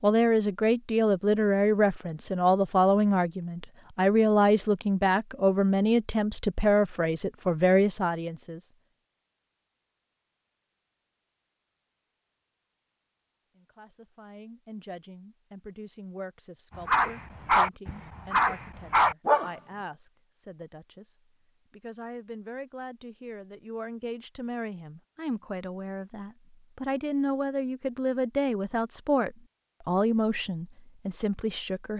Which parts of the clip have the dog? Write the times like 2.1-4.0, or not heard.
16.8-19.5.